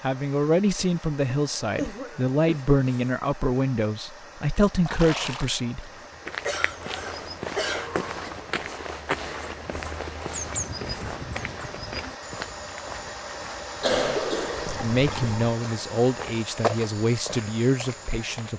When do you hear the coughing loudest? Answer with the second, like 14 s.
14 s.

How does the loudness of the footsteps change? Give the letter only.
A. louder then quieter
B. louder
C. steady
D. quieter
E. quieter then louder
E.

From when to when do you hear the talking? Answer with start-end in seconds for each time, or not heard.
0.0-5.9, 14.8-18.5.